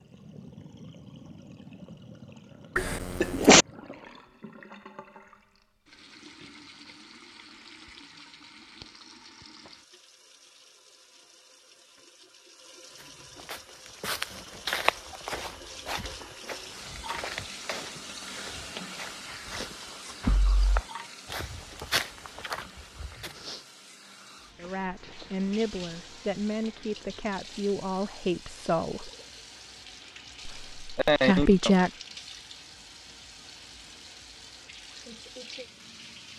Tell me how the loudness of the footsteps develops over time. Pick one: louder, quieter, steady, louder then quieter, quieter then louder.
quieter then louder.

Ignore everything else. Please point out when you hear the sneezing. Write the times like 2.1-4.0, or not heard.
2.8-3.6, 20.2-20.8, 30.9-31.8.